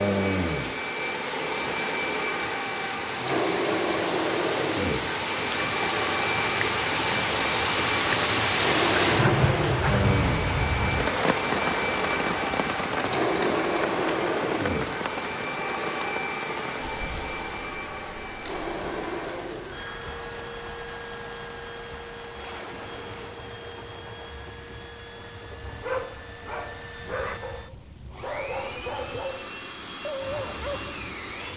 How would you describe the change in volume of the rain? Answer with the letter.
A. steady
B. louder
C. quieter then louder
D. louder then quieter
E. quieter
D.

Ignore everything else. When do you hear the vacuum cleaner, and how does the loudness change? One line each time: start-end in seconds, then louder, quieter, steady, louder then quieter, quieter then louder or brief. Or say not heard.
0.0-31.5 quieter.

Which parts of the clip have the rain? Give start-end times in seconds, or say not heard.
0.1-31.5.